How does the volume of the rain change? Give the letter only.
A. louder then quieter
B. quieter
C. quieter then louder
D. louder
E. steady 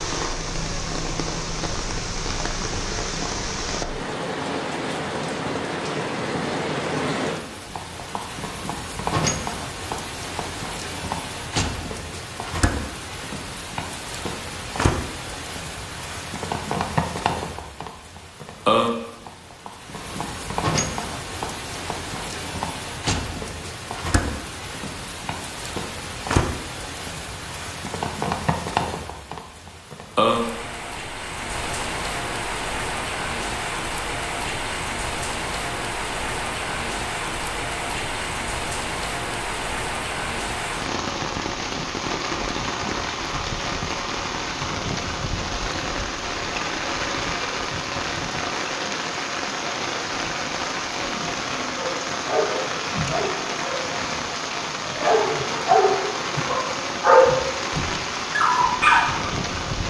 E.